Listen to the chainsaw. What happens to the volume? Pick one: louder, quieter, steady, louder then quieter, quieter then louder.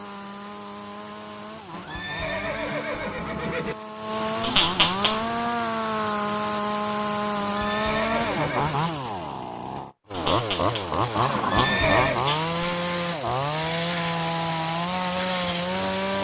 louder.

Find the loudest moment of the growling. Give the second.
5 s.